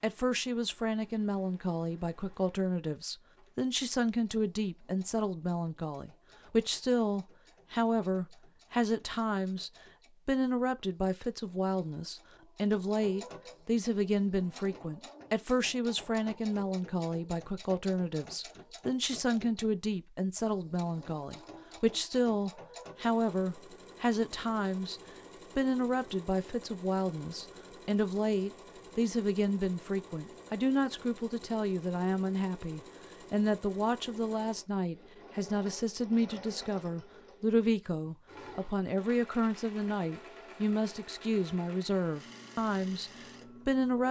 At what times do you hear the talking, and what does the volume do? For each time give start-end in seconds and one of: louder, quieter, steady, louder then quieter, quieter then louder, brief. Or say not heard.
0.0-44.0 steady.